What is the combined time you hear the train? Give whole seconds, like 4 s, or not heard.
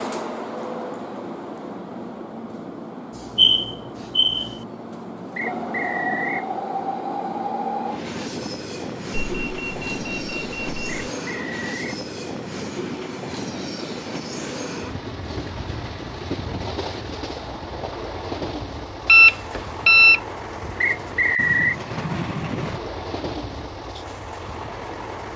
25 s.